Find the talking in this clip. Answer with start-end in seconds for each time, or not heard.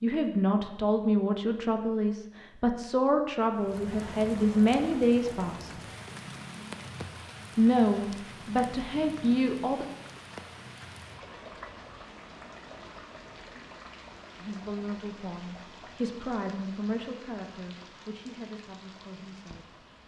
0.0-5.7, 7.5-9.8, 14.3-19.8.